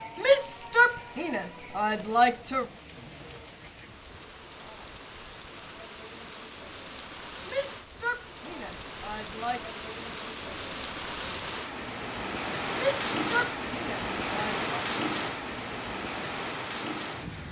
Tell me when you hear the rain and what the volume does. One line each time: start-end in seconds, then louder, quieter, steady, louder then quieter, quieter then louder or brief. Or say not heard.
0.0-17.4 louder.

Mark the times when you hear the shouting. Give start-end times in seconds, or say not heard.
0.1-2.6, 7.5-9.8, 12.8-14.7.